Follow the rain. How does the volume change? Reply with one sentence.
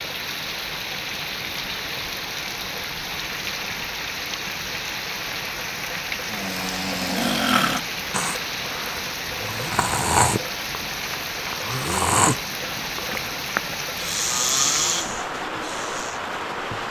The loudness of the rain stays about the same.